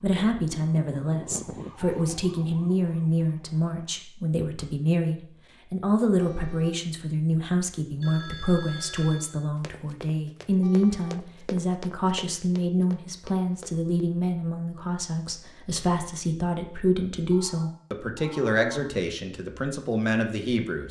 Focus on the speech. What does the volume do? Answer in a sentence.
The volume of the speech stays about the same.